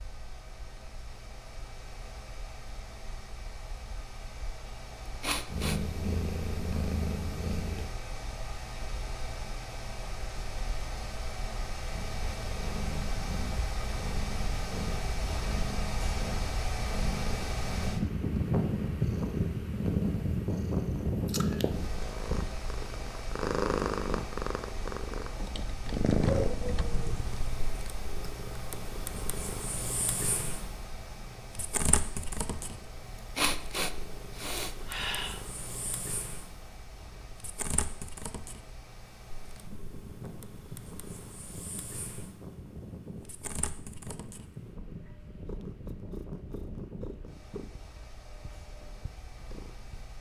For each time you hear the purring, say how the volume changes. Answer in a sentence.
You can hear the purring briefly from 5.5 to 7.9 s; and from 11.9 to 50.1 s, getting louder then quieter.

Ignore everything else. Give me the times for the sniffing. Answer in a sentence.
The sniffing can be heard from 5.2 to 5.8 s and from 33.4 to 35.4 s.